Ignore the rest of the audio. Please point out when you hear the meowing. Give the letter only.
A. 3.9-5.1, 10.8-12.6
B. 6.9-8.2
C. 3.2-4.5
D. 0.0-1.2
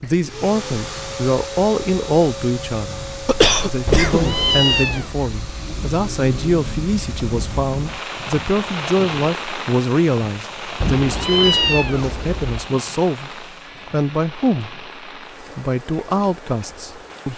A.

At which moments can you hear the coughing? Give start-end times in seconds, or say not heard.
3.2-4.5.